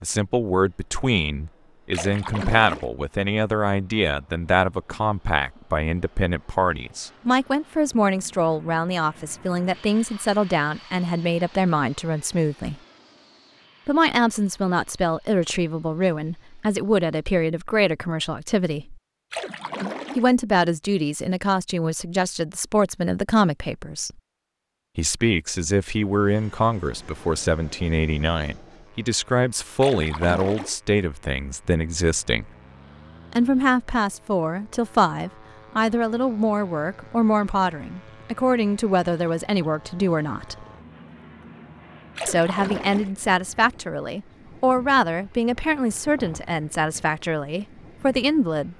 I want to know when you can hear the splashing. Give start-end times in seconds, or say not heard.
1.9-2.9, 19.3-20.2, 29.8-30.8, 42.1-43.1.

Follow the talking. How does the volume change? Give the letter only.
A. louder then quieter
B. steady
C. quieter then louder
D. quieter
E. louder
B.